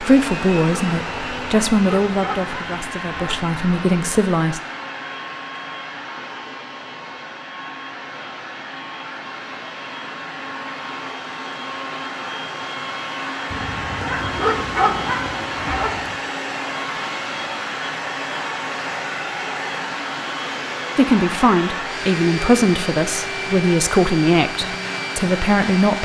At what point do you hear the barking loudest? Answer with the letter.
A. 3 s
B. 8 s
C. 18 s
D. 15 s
D.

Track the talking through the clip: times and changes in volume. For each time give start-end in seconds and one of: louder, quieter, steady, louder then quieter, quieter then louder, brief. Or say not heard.
0.0-4.6 quieter then louder
20.9-26.0 steady.